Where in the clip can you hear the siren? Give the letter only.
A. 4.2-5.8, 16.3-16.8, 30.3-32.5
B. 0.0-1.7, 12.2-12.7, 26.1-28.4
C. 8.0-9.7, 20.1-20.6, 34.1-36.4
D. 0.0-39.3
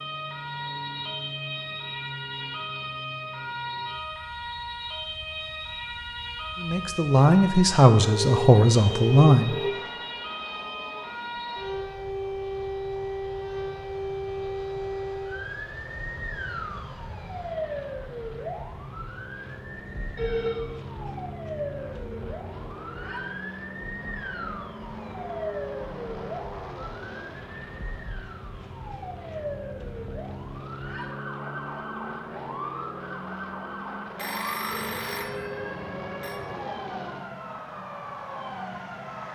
D.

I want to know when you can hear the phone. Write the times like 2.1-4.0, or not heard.
8.0-9.7, 20.1-20.6, 34.1-36.4.